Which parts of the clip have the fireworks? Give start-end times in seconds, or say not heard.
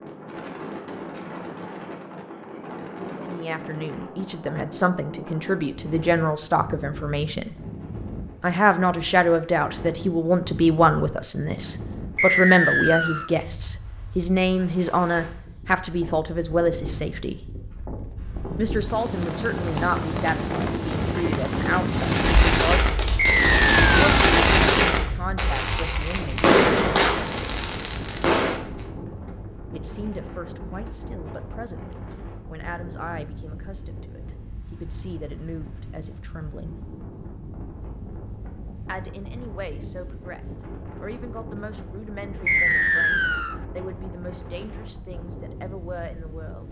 21.9-28.9.